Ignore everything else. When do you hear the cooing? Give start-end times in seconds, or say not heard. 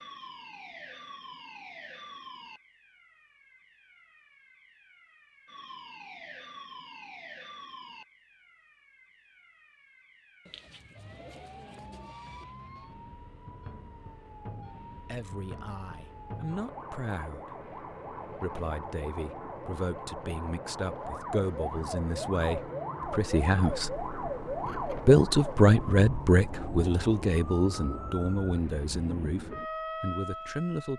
10.4-12.4.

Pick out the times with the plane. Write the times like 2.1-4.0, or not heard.
not heard.